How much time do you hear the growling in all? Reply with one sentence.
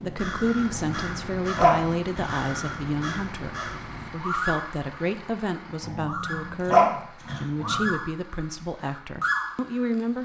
You can hear the growling for 4 seconds altogether.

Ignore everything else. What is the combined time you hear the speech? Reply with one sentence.
You can hear the speech for 10 seconds altogether.